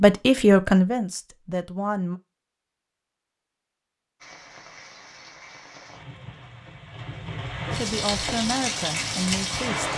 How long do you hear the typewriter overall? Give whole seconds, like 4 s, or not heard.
not heard.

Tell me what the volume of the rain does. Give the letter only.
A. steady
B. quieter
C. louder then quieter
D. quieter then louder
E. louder
E.